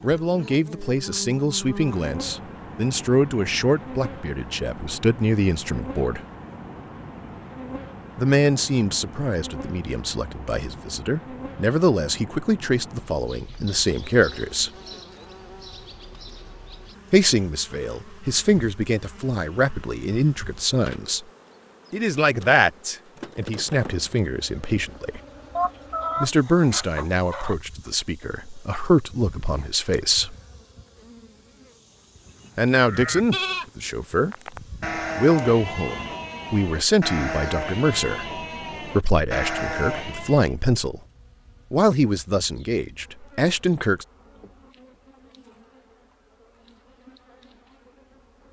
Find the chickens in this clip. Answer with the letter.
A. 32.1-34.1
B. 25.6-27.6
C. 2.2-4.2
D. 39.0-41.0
B.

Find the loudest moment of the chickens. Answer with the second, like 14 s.
26 s.